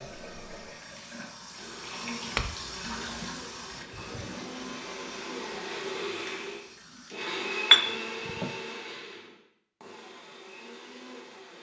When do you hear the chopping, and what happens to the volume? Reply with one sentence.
The chopping can't be heard in this clip.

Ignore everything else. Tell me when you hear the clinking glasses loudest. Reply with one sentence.
The volume of the clinking glasses peaks at 8 seconds.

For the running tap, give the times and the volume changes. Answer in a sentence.
The running tap can be heard from 0.0 to 7.2 s, getting louder then quieter.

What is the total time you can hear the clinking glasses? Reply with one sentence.
You can hear the clinking glasses for 2 seconds altogether.